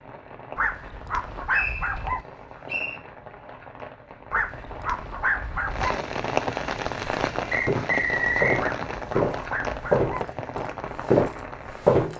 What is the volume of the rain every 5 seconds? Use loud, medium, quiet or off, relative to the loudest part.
quiet, loud, medium.